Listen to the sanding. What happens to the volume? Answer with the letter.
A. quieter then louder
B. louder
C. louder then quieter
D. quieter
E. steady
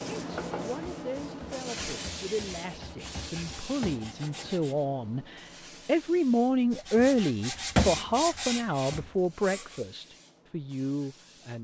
C.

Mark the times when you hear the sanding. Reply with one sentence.
You can hear the sanding from 0.2 to 4.8 s and from 6.7 to 9.8 s.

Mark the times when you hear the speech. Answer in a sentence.
The speech can be heard from 0.1 to 11.5 s.